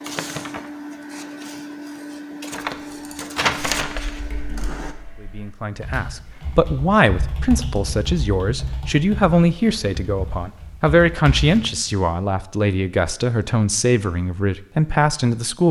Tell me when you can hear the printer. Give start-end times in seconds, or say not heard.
0.0-5.0.